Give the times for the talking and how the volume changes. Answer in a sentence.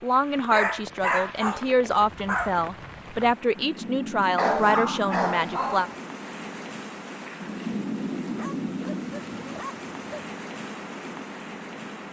You can hear the talking from 0.0 to 5.9 s, at a steady volume.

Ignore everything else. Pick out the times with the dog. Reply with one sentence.
You can hear the dog from 0.5 to 2.5 s, from 4.3 to 6.0 s and from 8.3 to 10.3 s.